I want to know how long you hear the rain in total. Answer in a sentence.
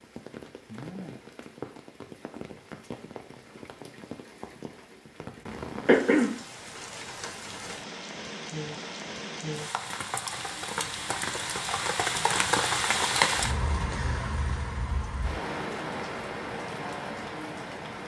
You can hear the rain for 18 seconds altogether.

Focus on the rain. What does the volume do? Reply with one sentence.
The loudness of the rain goes up, then down.